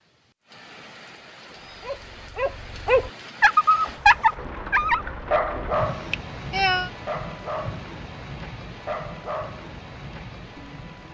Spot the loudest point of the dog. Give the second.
4 s.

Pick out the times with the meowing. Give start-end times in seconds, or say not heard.
5.9-6.9.